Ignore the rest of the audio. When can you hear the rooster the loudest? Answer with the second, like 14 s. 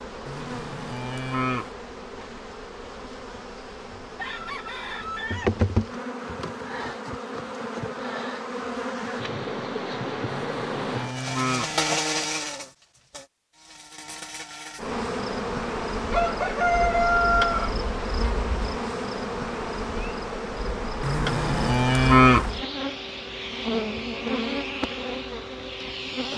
17 s.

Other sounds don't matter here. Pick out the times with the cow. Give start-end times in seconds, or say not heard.
0.2-1.7, 10.2-11.8, 21.0-22.5.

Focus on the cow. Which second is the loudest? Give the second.
22 s.